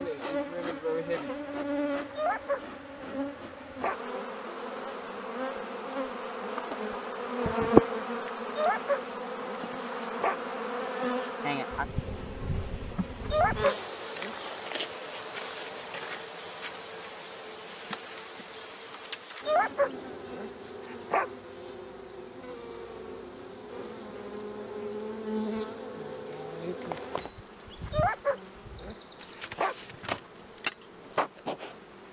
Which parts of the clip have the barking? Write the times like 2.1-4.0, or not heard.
2.1-4.0, 8.5-10.4, 13.2-14.3, 19.4-21.3, 27.9-29.8.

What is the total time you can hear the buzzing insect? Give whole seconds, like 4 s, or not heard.
32 s.